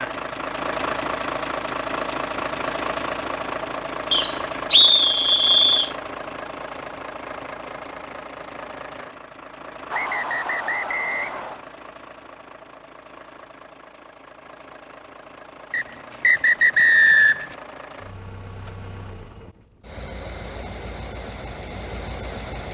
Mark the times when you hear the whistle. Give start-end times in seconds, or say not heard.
4.1-5.9, 9.9-11.6, 15.7-17.6.